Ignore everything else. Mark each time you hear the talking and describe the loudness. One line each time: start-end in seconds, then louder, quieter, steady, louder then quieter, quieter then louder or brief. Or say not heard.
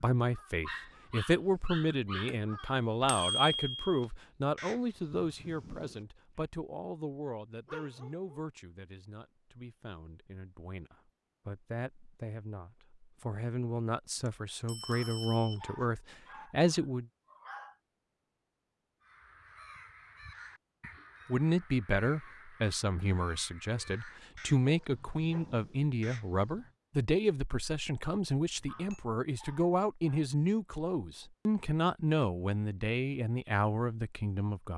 0.0-17.1 quieter then louder
21.2-34.7 steady.